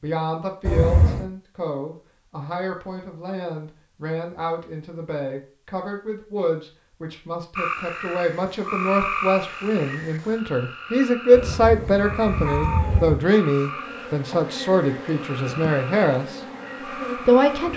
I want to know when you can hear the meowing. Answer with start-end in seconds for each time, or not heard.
0.7-1.2, 11.3-13.2.